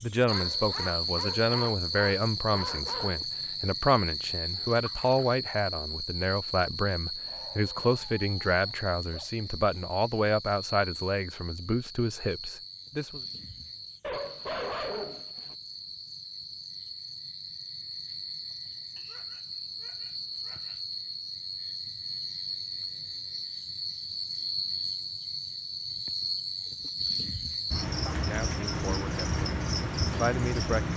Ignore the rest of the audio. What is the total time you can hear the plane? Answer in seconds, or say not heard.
not heard.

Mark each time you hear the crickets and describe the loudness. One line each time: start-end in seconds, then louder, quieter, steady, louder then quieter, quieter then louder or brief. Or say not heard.
0.0-30.9 quieter then louder.